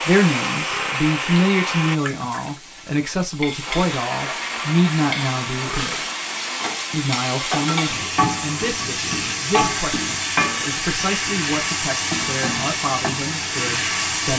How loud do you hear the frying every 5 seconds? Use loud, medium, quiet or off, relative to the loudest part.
medium, loud, loud.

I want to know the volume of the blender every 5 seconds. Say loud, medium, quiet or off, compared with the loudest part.
loud, medium, off.